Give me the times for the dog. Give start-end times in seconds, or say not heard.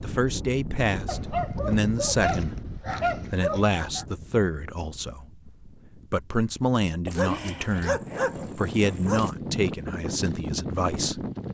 1.1-4.0, 7.0-9.3.